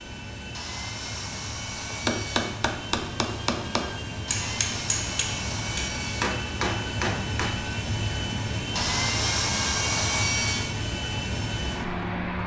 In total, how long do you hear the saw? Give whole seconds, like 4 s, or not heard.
6 s.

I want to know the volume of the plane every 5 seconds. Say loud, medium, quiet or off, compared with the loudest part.
medium, loud, loud.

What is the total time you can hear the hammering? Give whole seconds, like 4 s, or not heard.
6 s.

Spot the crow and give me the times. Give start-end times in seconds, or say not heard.
not heard.